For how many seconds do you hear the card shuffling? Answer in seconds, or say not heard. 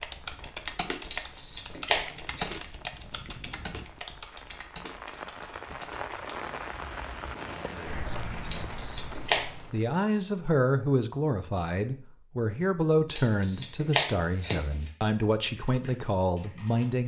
4 s.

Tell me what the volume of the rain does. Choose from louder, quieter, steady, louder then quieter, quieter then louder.
louder.